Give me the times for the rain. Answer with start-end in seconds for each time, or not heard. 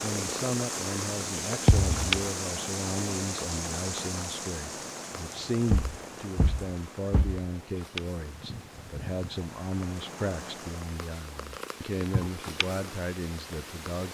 0.0-11.0.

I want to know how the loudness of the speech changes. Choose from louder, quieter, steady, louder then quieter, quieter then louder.
steady.